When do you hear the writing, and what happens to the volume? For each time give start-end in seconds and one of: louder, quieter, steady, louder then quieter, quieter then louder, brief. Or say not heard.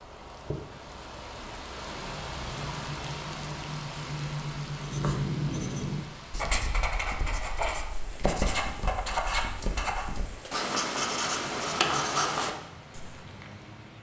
2.0-13.2 louder.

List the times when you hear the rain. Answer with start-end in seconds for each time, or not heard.
0.0-13.9.